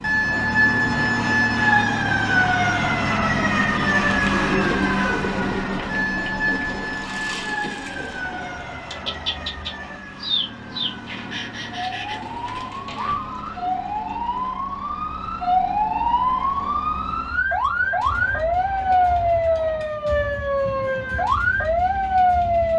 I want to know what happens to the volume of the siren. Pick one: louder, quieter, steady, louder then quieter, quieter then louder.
quieter then louder.